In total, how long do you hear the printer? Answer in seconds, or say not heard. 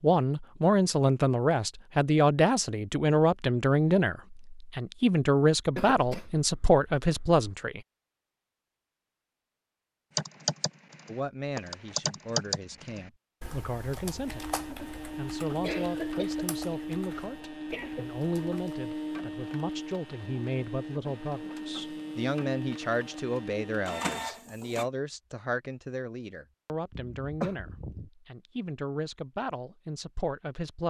11 s.